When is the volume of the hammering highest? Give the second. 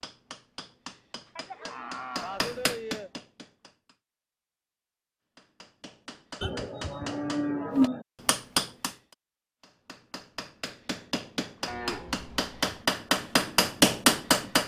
14 s.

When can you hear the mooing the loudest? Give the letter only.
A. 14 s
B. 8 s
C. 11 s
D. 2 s
B.